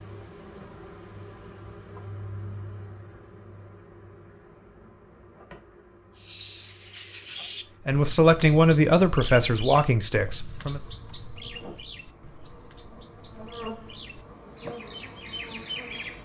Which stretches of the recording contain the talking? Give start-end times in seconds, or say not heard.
7.8-10.8.